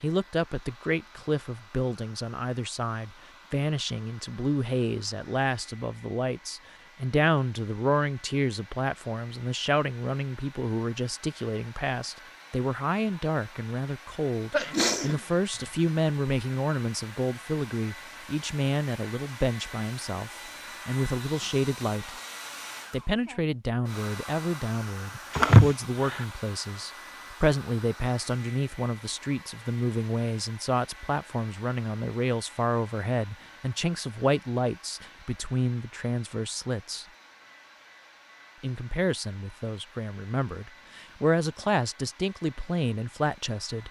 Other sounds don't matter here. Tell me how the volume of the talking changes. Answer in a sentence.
The volume of the talking stays about the same.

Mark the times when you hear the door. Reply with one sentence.
You can't hear the door here.